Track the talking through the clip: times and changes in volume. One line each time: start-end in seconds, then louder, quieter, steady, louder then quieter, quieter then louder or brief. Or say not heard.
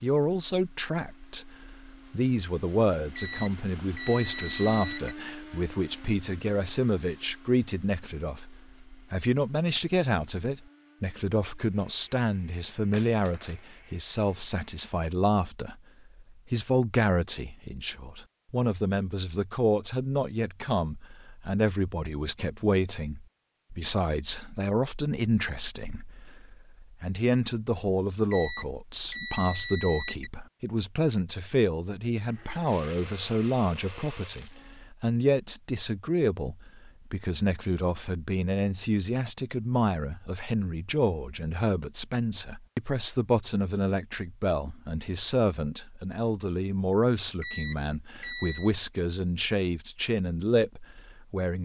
0.0-51.6 steady.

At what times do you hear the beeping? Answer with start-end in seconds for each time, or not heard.
3.1-5.2, 28.3-30.3, 47.4-48.8.